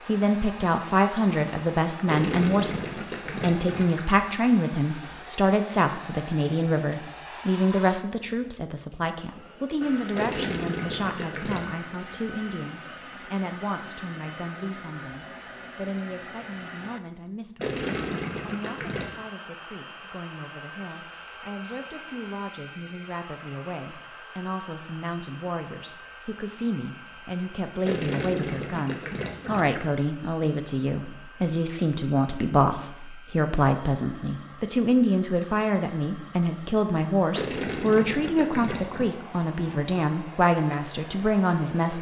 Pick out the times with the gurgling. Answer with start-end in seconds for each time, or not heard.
2.0-4.0, 10.2-11.7, 17.6-19.1, 27.8-29.9, 37.3-39.0.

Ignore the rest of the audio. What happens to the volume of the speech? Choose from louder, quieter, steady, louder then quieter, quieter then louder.
quieter then louder.